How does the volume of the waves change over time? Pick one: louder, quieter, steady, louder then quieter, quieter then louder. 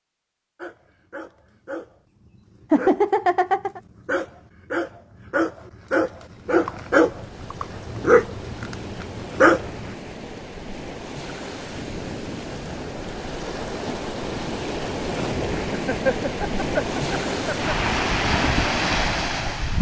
louder.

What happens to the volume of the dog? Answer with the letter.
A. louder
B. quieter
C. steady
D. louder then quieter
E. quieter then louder
A.